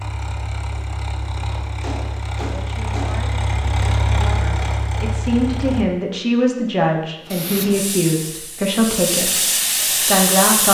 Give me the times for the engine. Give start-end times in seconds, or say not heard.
0.0-5.8.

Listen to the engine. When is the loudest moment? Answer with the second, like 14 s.
4 s.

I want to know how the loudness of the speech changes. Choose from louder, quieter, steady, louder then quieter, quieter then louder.
louder.